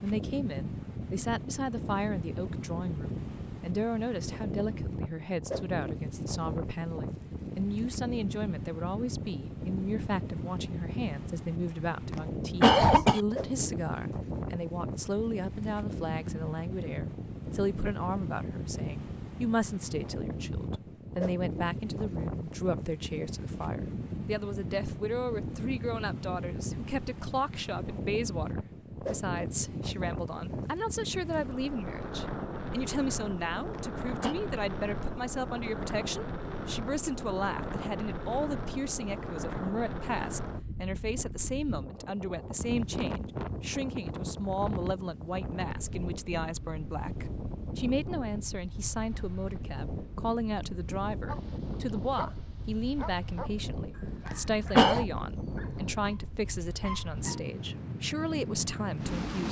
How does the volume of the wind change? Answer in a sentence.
The volume of the wind stays about the same.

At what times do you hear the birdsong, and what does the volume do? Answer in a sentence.
The birdsong can't be heard in this clip.